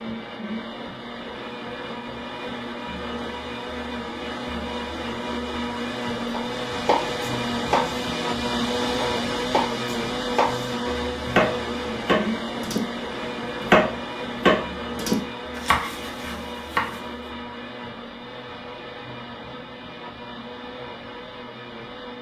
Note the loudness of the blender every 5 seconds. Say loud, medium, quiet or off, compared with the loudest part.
medium, loud, loud, medium, medium.